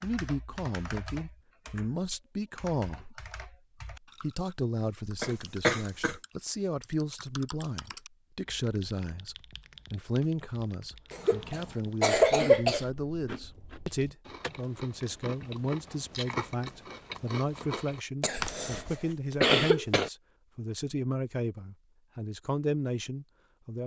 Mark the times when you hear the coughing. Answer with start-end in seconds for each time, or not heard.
5.2-6.2, 11.1-12.8, 18.2-20.1.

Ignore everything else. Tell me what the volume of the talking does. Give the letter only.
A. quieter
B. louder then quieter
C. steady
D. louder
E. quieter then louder
C.